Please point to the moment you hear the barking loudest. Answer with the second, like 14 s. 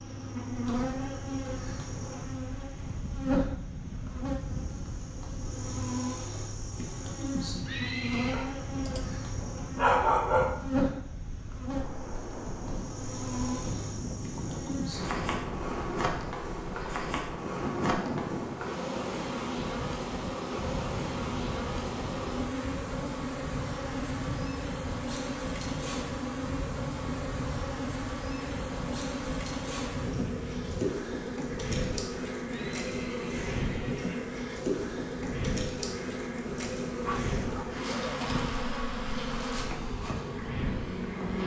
10 s.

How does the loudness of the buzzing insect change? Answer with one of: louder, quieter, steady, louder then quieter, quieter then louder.
steady.